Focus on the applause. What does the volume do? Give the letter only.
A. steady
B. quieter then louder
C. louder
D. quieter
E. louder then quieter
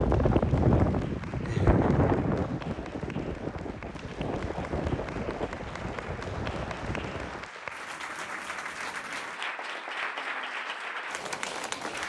C.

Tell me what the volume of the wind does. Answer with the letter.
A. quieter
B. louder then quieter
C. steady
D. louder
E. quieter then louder
A.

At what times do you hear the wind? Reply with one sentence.
The wind can be heard from 0.0 to 7.5 s.